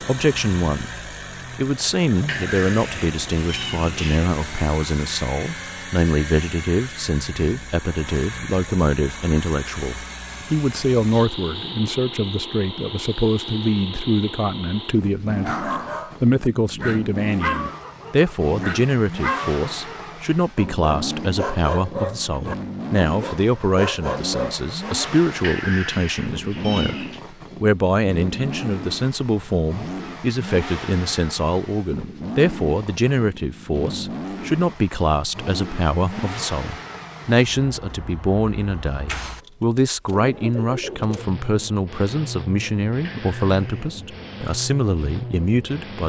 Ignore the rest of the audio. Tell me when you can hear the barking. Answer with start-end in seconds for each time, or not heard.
15.4-25.1.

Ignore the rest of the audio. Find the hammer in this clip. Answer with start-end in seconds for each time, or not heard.
not heard.